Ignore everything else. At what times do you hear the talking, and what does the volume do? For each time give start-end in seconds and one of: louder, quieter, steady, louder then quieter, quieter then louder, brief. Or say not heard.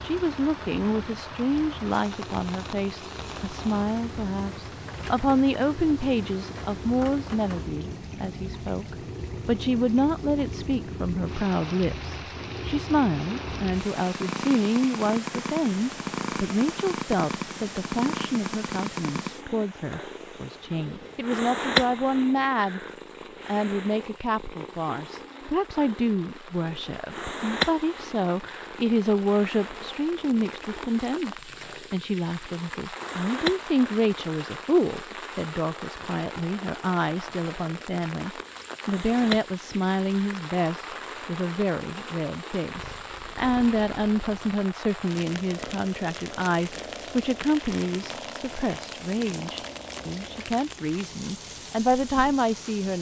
0.0-22.8 steady
23.4-52.9 steady.